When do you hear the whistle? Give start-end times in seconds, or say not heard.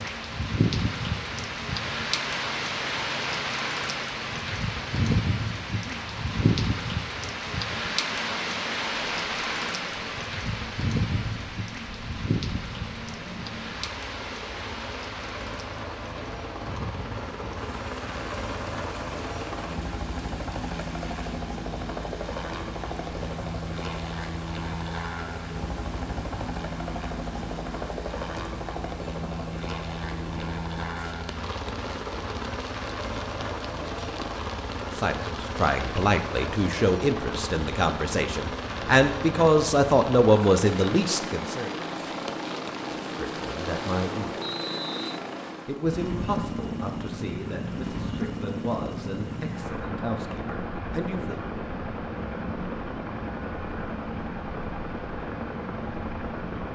44.4-45.2.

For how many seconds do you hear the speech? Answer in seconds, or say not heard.
14 s.